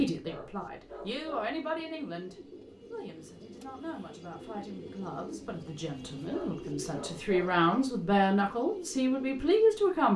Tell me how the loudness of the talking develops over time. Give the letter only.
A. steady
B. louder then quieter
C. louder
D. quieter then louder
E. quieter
D.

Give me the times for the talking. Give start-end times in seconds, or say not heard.
0.0-10.1.